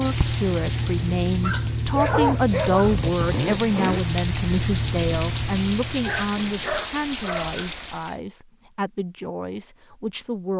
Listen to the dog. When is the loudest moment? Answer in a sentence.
The volume of the dog peaks at 2 seconds.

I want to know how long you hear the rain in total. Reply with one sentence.
You can hear the rain for 8 seconds altogether.